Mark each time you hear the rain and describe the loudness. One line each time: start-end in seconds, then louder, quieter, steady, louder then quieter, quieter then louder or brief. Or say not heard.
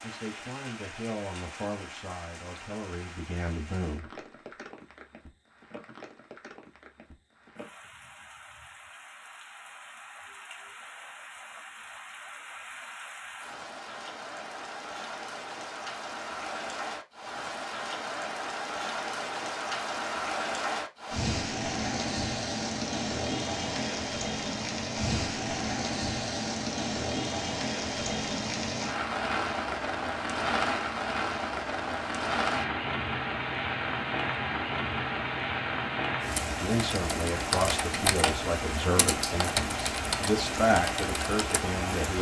0.0-42.1 louder.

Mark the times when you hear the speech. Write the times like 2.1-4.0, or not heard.
0.0-4.2, 36.5-42.1.